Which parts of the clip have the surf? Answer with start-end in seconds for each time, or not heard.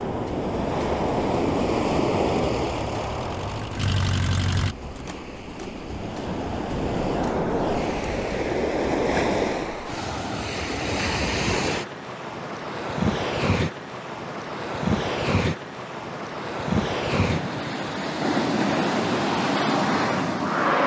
0.0-20.8.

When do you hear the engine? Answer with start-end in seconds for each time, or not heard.
2.4-4.8.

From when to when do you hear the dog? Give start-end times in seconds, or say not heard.
not heard.